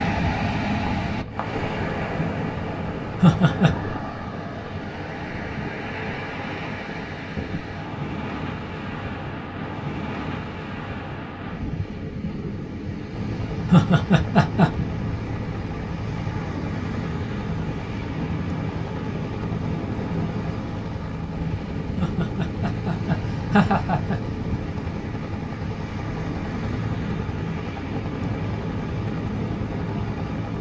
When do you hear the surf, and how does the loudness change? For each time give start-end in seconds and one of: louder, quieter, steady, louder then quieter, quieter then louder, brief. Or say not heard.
0.0-30.5 steady.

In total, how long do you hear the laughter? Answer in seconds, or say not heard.
4 s.